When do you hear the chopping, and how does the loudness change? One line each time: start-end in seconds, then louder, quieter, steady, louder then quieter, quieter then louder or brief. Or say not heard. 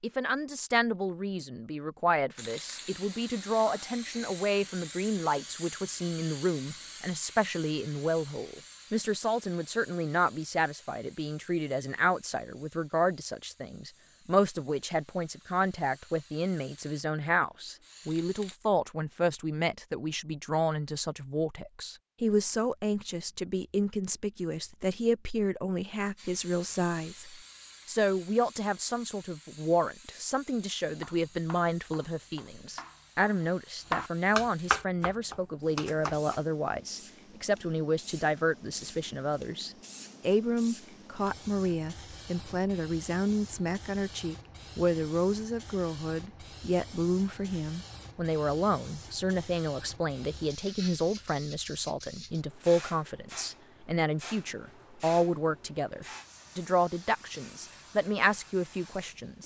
30.9-36.4 louder then quieter.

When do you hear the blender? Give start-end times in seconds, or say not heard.
not heard.